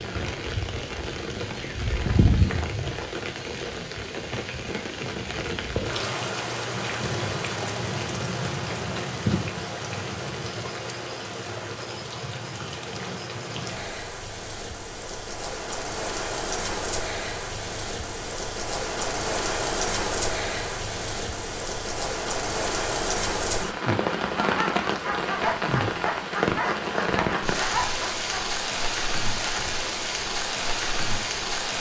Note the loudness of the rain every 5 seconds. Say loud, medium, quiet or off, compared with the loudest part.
loud, loud, medium, loud, loud, loud, loud.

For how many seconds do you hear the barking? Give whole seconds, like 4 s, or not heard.
4 s.